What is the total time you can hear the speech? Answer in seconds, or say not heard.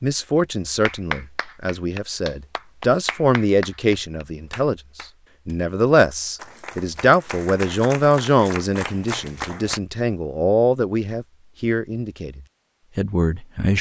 14 s.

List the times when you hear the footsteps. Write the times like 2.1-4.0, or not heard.
not heard.